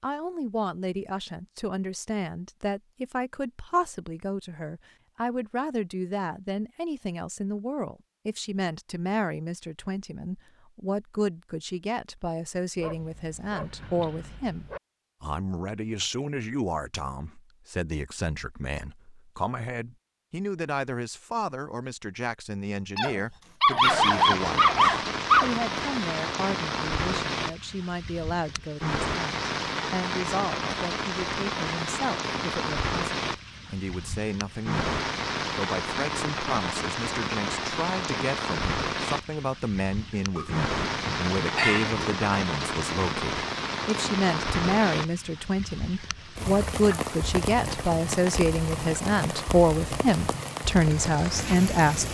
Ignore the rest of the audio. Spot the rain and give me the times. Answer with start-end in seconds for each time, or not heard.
23.8-52.0.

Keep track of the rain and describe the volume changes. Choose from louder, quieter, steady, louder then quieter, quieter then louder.
steady.